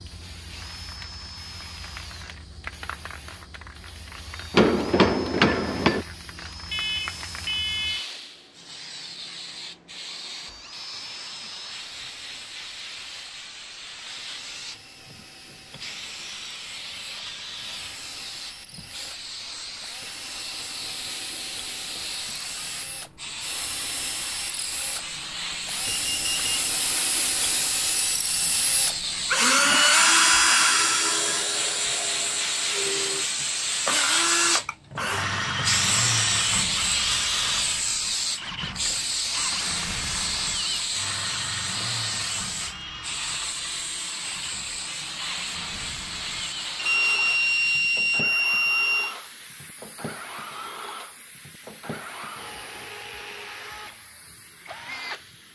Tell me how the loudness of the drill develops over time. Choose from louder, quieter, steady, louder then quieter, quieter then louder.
louder then quieter.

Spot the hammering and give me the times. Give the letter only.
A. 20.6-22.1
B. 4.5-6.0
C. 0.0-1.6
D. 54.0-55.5
B.